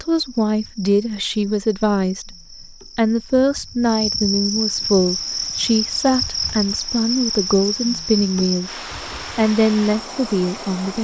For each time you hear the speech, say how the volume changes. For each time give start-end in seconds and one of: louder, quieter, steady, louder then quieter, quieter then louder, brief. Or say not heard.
0.0-8.7 steady
9.3-10.9 brief.